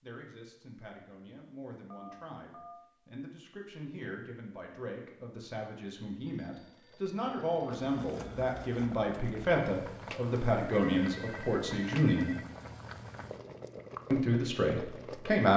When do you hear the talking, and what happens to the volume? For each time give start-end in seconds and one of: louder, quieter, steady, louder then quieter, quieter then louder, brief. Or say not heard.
0.0-12.3 louder
14.1-15.5 brief.